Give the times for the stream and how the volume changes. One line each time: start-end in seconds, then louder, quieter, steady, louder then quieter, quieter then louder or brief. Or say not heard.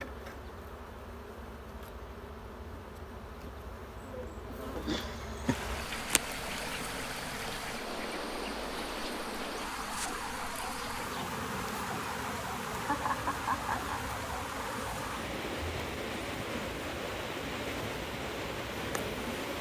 5.4-19.5 steady.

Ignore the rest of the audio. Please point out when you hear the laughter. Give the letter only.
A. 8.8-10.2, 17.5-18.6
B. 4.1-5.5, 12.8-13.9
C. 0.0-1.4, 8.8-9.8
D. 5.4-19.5
B.